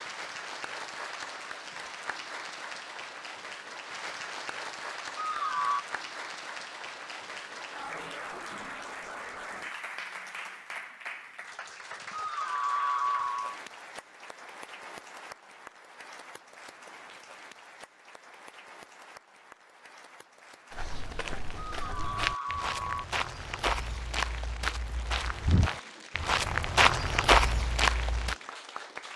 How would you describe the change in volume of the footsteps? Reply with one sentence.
The volume of the footsteps goes up.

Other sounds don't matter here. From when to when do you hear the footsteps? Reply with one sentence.
The footsteps can be heard from 20.7 to 28.4 s.